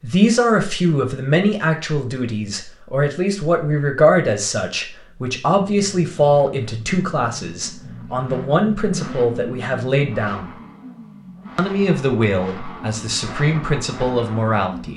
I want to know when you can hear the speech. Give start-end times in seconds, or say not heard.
0.0-10.6, 11.6-14.9.